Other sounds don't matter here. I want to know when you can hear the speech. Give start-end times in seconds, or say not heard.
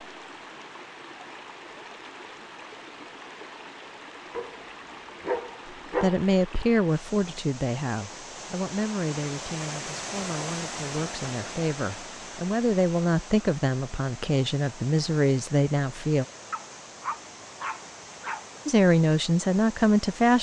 6.0-16.2, 18.6-20.3.